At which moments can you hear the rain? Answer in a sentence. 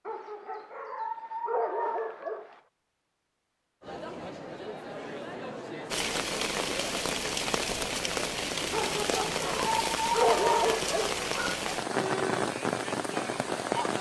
You can hear the rain from 5.9 to 13.9 s.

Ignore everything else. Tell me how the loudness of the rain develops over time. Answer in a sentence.
The loudness of the rain stays about the same.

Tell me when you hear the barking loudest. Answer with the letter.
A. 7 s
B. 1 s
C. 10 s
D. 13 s
C.